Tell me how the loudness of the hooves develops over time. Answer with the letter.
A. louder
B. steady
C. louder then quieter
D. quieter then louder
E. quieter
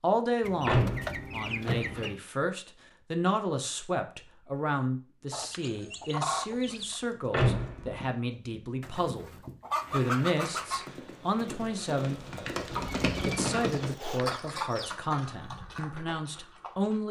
C.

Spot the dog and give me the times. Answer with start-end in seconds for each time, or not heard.
not heard.